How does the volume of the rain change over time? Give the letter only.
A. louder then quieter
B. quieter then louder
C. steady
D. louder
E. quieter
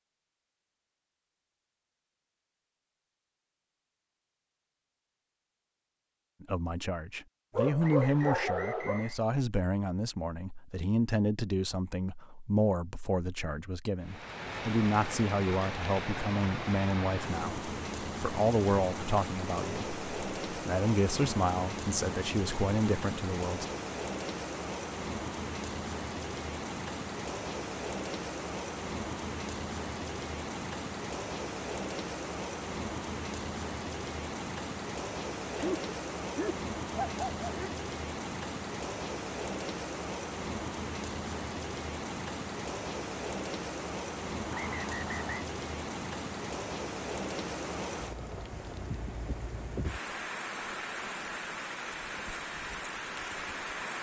C.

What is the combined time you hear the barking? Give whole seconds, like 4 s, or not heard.
4 s.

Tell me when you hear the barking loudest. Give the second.
8 s.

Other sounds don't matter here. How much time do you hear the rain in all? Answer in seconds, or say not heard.
40 s.